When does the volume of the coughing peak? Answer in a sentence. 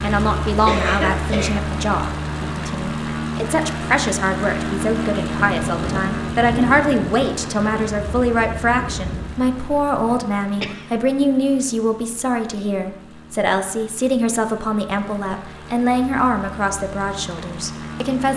The loudest moment of the coughing is at 1 second.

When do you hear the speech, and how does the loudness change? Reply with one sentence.
The speech can be heard from 0.0 to 18.3 s, at a steady volume.